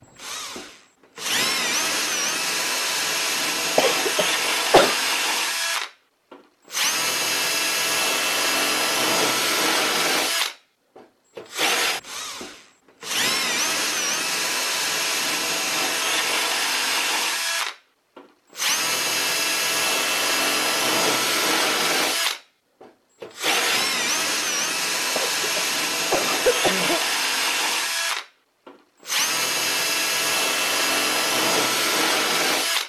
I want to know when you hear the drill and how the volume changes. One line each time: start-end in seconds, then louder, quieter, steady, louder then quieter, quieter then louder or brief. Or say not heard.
0.1-32.8 steady.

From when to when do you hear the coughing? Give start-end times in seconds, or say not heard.
3.8-5.0, 25.1-27.0.